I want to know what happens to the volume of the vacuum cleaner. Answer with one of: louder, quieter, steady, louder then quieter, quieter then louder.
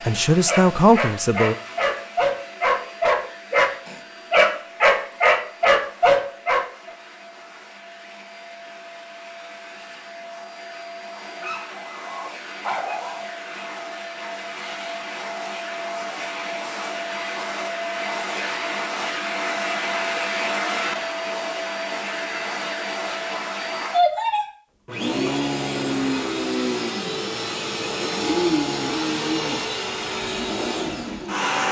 louder.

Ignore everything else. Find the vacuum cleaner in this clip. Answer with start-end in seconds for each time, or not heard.
0.0-31.6.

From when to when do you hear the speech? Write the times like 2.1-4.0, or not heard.
0.1-1.6.